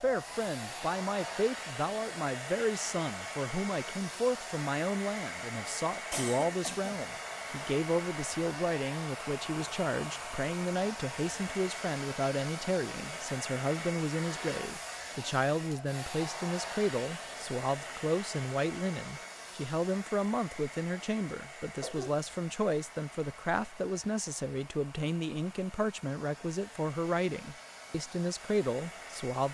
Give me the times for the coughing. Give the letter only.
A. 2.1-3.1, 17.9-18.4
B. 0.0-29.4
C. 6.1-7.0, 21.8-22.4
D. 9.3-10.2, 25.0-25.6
C.